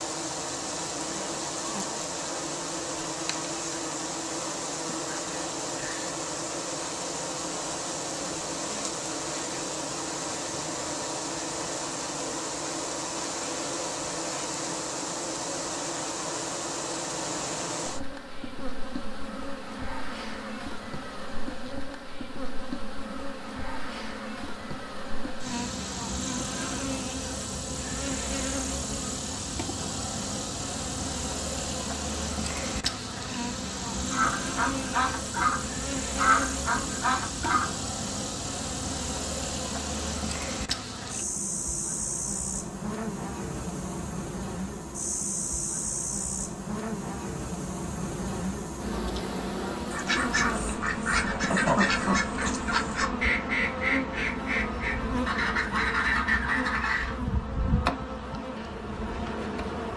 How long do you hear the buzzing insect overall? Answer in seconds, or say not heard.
60 s.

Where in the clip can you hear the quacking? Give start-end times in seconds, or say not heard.
34.1-37.8, 49.9-57.1.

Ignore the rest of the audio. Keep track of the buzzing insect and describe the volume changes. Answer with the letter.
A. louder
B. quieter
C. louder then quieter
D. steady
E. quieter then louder
D.